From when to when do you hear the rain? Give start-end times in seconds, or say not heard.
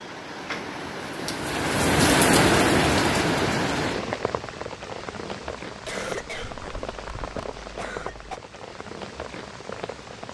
0.0-10.2.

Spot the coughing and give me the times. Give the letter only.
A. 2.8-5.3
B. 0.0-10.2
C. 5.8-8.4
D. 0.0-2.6
C.